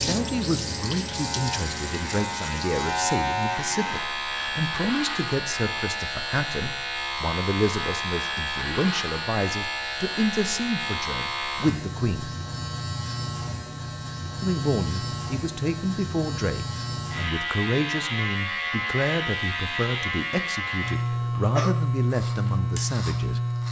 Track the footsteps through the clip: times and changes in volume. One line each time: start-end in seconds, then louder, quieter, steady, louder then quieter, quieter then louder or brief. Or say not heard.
not heard.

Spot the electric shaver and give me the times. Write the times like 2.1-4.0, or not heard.
0.0-23.6.